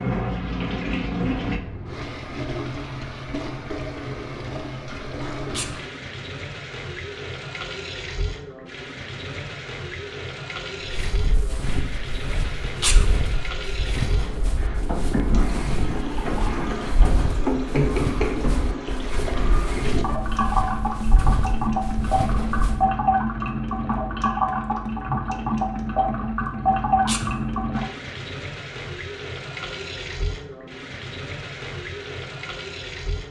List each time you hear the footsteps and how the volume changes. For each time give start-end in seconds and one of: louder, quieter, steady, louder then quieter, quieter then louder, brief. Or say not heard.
10.8-22.9 steady.